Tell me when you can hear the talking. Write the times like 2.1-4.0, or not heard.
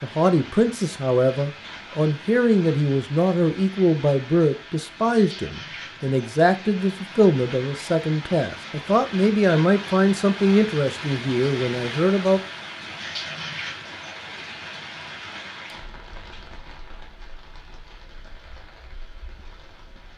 0.0-12.4.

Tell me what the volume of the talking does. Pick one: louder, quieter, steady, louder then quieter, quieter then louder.
steady.